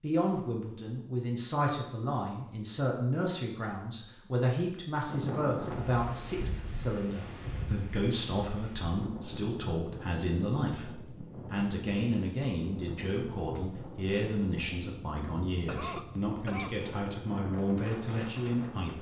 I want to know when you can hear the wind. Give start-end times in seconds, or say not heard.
5.0-18.9.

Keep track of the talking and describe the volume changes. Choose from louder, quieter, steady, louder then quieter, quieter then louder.
steady.